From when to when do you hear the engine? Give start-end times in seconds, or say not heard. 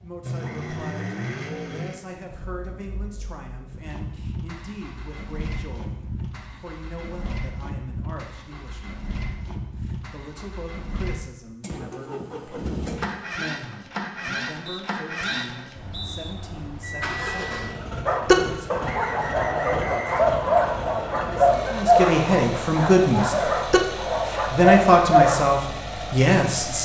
0.0-26.8.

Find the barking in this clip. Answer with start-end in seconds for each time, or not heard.
18.1-25.4.